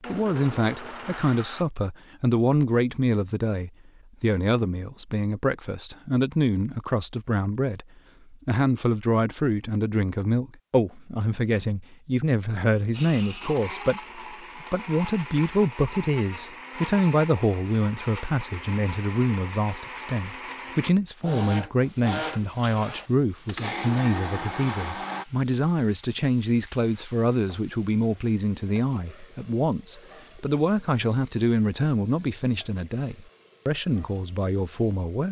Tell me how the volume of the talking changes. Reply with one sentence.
The loudness of the talking stays about the same.